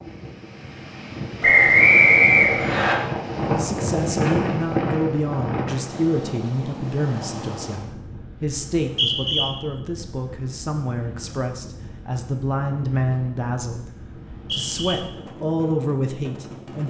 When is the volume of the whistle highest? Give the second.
2 s.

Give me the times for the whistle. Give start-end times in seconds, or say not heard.
1.4-3.0, 8.7-9.4, 14.2-14.9.